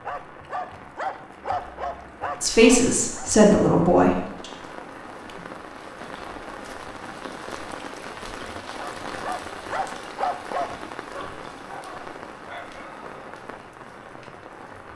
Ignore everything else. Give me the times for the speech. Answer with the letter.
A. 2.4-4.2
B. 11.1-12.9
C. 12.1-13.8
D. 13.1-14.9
A.